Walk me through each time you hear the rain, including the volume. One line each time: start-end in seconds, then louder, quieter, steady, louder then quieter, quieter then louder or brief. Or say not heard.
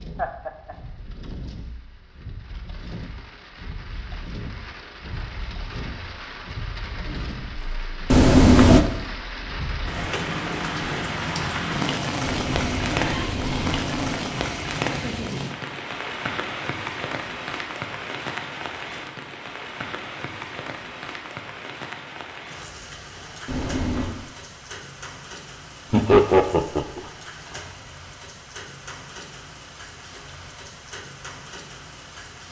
0.0-32.4 louder then quieter.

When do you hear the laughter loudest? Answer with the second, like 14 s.
26 s.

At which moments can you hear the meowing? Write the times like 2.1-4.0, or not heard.
8.1-8.8, 12.2-14.2, 23.4-24.1.